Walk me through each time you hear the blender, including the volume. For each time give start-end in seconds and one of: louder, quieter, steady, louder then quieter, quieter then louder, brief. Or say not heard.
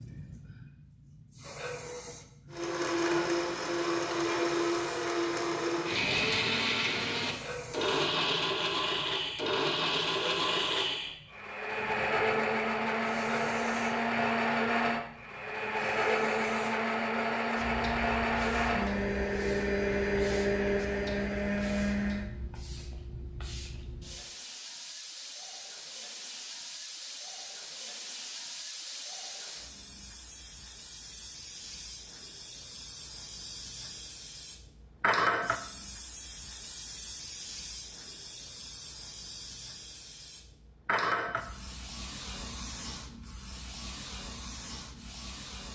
2.5-22.3 steady.